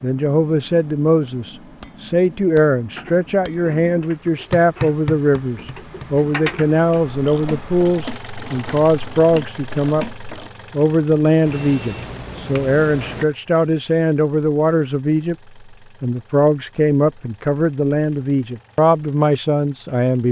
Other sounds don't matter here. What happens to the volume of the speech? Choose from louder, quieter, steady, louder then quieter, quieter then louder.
steady.